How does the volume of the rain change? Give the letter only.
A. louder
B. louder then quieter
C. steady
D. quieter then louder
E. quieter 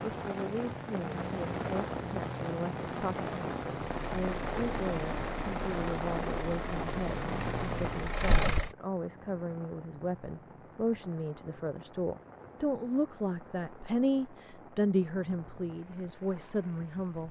E.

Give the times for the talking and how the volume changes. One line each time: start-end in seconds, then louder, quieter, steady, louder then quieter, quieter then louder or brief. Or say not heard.
0.0-17.2 louder.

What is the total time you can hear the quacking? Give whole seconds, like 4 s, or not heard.
not heard.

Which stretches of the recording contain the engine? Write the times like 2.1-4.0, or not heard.
3.8-8.7.